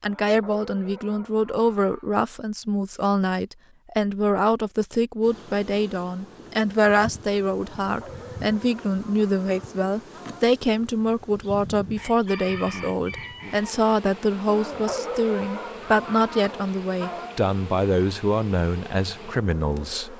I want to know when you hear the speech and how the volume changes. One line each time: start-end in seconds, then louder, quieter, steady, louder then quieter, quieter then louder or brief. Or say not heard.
0.0-20.1 steady.